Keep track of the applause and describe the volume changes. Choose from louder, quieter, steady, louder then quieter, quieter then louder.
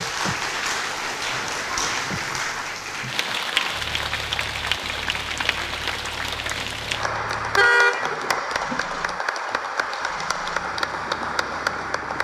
steady.